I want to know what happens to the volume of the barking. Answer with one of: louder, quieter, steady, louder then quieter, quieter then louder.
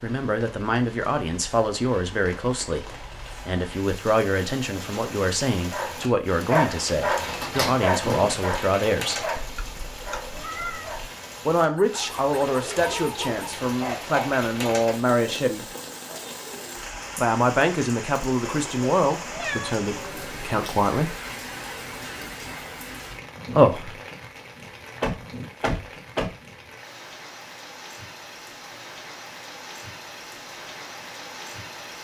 quieter then louder.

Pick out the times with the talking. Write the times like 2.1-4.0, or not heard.
0.0-9.3, 11.4-15.7, 17.1-21.1, 23.5-24.0.